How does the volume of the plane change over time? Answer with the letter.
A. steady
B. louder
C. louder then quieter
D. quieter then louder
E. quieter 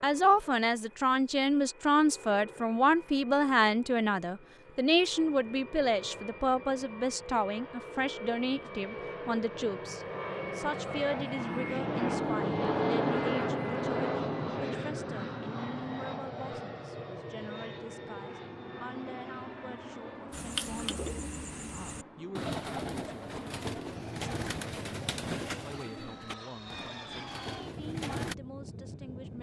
C.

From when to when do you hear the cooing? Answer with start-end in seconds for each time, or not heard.
20.3-28.4.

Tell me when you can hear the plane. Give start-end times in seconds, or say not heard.
0.0-29.3.